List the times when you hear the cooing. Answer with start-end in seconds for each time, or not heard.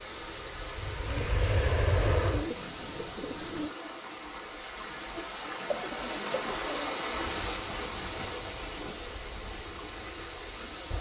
1.1-3.8, 5.7-7.6.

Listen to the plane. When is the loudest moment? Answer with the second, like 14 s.
2 s.